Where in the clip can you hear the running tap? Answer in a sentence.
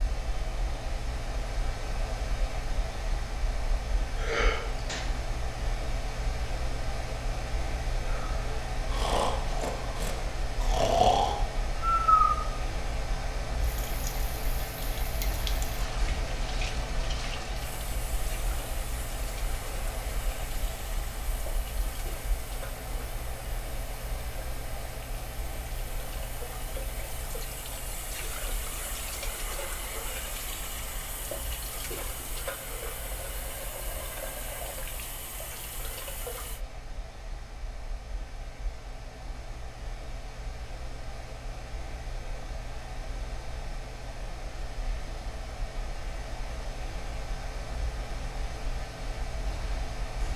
The running tap can be heard from 13.6 to 36.6 s.